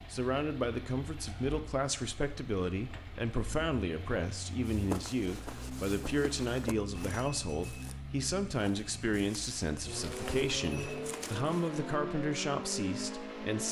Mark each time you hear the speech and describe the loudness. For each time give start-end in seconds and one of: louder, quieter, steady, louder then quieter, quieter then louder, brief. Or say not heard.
0.1-13.6 steady.